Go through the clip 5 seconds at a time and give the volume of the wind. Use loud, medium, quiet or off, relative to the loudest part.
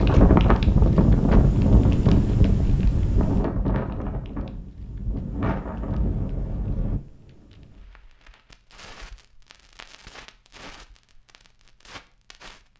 loud, medium, off.